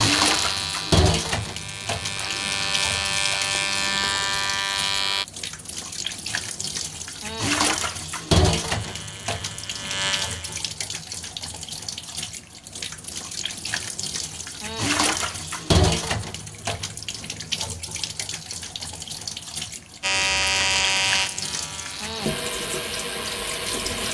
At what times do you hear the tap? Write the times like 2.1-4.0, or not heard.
0.0-24.0.